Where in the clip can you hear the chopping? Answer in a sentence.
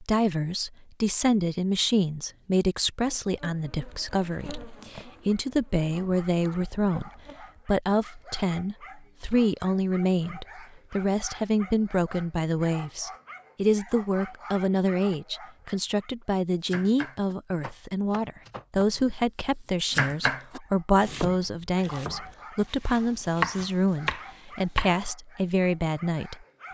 You can hear the chopping from 16.6 to 25.1 s.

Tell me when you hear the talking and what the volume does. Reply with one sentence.
The talking can be heard from 0.0 to 26.4 s, at a steady volume.